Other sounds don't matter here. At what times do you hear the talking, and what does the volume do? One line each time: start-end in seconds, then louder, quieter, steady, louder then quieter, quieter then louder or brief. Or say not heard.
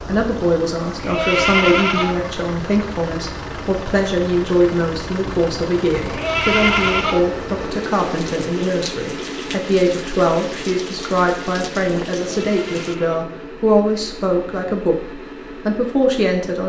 0.1-16.6 steady.